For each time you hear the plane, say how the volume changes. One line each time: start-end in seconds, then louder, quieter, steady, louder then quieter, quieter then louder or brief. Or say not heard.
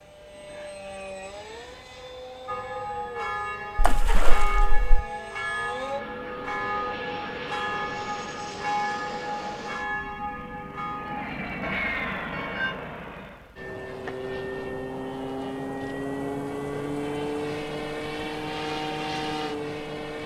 0.0-20.2 louder.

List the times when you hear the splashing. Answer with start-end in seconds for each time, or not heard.
3.8-5.0.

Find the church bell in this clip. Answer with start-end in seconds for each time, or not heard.
2.5-12.8.